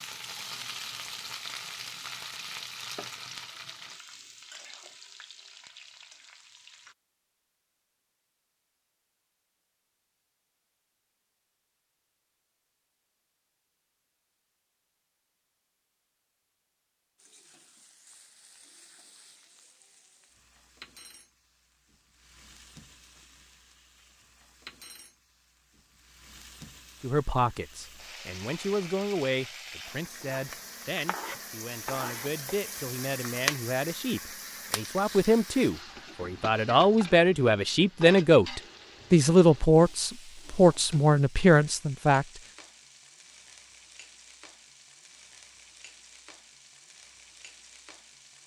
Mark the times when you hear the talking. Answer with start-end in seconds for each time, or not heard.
27.0-42.2.